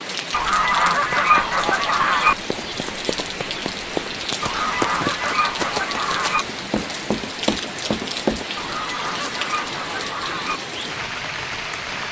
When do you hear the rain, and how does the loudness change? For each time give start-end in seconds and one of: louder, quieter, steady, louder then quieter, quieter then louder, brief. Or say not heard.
0.0-12.0 steady.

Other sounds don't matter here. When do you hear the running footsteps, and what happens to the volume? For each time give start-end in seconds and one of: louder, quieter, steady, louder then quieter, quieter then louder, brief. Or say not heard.
1.1-8.4 louder.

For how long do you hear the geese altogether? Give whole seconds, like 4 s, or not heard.
6 s.